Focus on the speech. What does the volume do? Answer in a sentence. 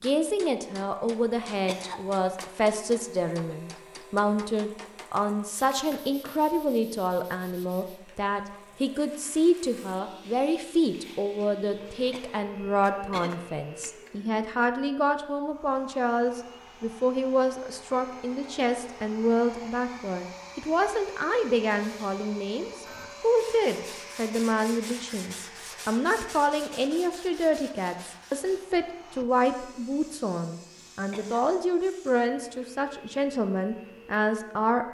The volume of the speech stays about the same.